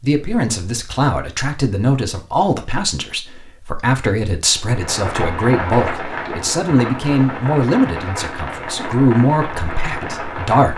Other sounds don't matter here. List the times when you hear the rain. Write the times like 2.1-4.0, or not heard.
4.5-10.7.